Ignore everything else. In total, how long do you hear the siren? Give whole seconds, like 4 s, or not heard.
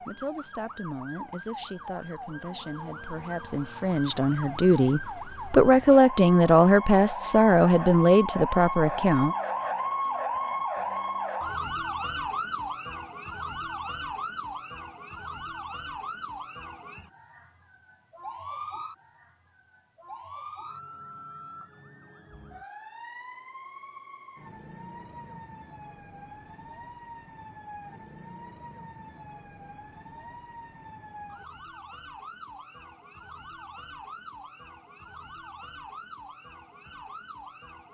38 s.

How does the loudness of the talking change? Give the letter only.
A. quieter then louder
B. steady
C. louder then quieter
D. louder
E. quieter
D.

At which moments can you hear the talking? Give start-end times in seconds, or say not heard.
0.0-9.3.